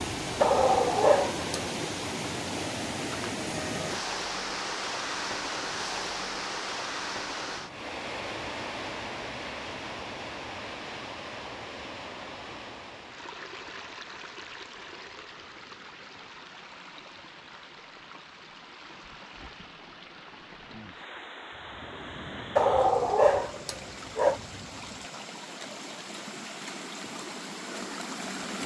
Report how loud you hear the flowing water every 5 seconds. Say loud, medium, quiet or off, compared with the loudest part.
loud, loud, medium, quiet, medium, medium.